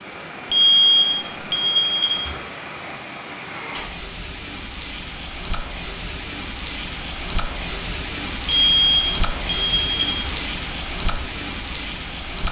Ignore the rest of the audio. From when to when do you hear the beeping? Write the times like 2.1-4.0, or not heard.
0.5-2.4, 8.4-10.3.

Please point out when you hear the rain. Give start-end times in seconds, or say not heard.
0.0-12.4.